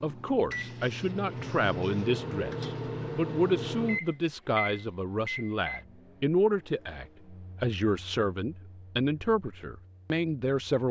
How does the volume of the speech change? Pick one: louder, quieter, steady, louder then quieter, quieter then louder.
steady.